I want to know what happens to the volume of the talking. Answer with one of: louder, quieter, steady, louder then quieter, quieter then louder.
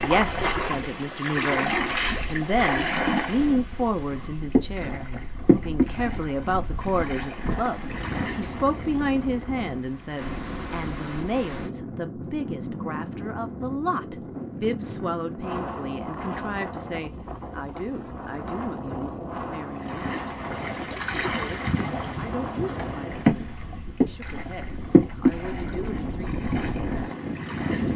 quieter.